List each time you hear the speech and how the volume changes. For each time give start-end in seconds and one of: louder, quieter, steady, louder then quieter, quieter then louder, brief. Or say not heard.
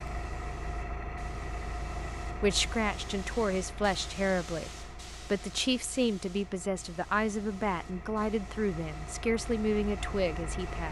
2.4-10.8 steady.